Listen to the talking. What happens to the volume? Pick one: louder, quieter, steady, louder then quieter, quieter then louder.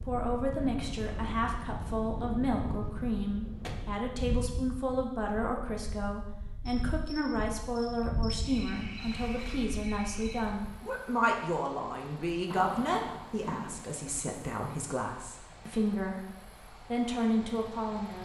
steady.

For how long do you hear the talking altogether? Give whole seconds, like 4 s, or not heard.
18 s.